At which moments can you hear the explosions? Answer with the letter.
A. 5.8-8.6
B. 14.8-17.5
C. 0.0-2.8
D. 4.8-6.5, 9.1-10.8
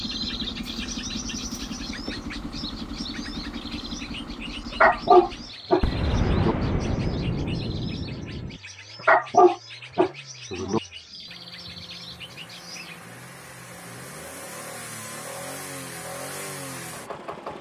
A.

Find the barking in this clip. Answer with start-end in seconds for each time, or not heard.
4.8-6.5, 9.1-10.8.